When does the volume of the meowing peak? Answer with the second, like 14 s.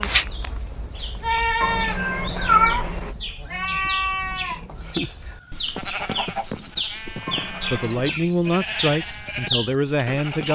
3 s.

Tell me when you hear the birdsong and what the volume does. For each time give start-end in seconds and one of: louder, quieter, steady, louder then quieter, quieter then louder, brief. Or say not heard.
0.1-10.4 louder.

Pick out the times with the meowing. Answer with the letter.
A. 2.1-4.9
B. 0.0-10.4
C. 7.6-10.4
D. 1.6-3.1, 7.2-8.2
D.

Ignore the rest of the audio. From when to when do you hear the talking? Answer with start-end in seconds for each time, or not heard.
7.6-10.4.